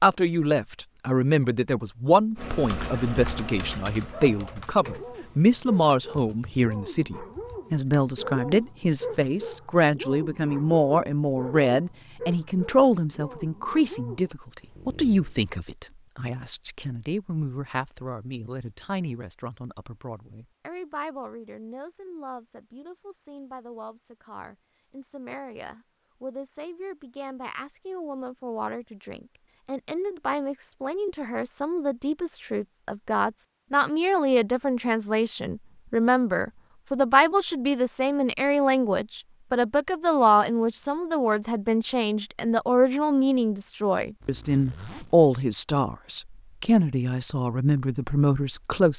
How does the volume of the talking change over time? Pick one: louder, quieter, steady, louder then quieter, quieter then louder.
quieter then louder.